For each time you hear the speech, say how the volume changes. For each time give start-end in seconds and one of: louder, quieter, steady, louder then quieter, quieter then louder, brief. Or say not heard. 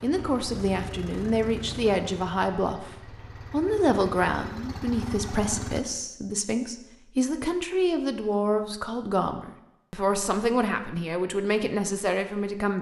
0.0-12.7 steady.